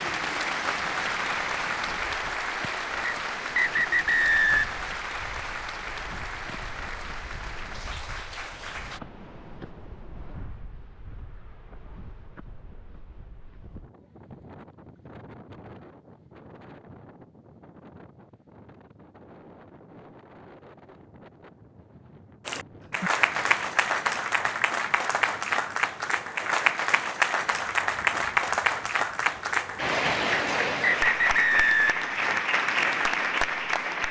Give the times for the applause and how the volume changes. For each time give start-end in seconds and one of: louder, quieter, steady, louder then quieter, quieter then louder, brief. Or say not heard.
0.0-9.0 quieter
22.4-34.0 steady.